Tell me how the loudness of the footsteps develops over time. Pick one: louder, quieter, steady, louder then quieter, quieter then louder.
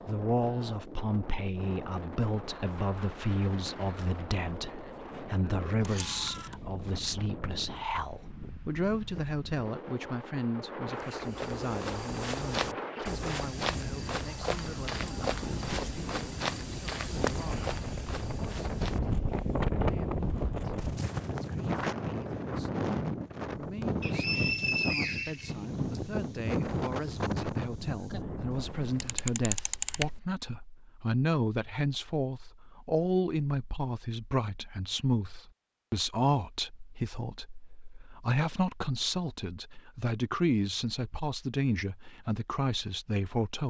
quieter.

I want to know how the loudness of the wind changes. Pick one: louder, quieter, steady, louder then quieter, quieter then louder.
louder.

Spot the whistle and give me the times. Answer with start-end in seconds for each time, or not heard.
24.0-26.0.